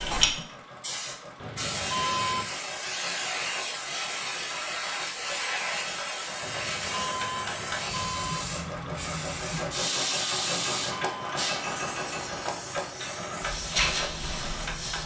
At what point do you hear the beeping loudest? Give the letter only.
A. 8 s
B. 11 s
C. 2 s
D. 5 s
C.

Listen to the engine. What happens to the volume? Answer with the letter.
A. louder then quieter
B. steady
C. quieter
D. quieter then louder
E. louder
E.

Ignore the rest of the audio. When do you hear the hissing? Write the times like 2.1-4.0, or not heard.
0.0-15.0.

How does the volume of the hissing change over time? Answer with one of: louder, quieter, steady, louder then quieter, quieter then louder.
steady.